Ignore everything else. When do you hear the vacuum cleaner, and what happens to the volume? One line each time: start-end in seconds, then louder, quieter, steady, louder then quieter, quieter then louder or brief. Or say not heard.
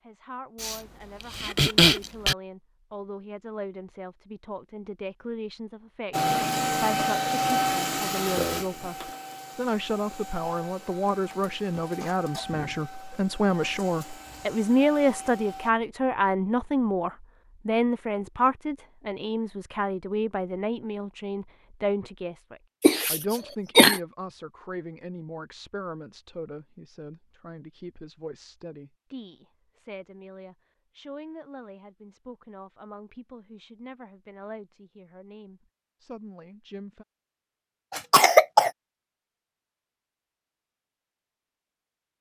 6.1-15.8 quieter.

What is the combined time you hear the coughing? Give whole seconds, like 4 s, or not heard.
4 s.